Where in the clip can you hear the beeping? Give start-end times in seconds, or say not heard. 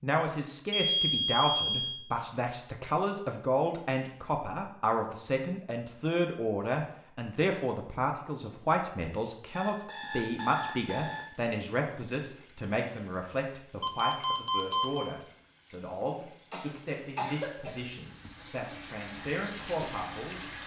0.7-2.0, 9.6-11.2, 13.8-15.1.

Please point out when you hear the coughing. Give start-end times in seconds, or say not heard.
16.5-17.9.